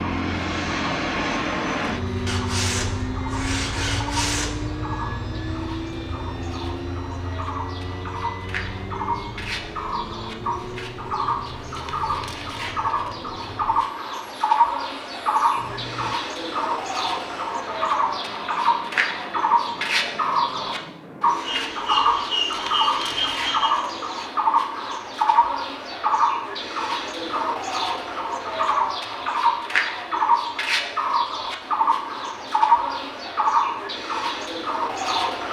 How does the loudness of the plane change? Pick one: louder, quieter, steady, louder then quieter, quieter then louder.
quieter.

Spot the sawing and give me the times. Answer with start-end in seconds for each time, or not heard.
2.2-4.5, 21.4-23.7.